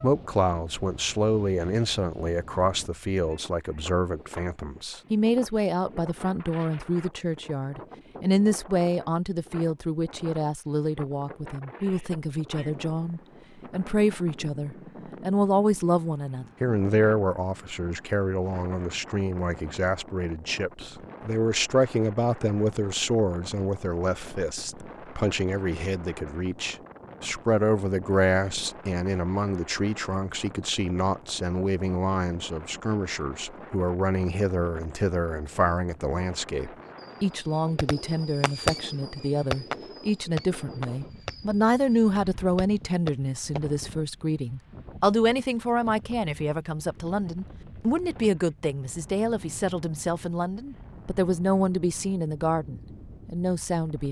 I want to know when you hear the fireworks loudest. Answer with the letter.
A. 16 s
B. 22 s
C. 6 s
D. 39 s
D.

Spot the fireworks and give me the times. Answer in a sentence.
The fireworks can be heard from 37.0 to 43.6 s.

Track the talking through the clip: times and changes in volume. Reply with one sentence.
The talking can be heard from 0.0 to 54.0 s, at a steady volume.